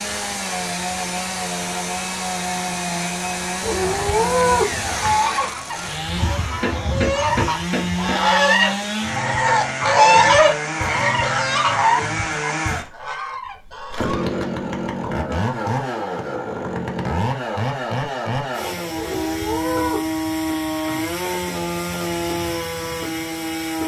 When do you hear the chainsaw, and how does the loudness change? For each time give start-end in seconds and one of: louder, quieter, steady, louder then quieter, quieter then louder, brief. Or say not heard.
0.0-23.8 steady.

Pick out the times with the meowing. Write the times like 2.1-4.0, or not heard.
3.6-5.2, 18.9-20.1.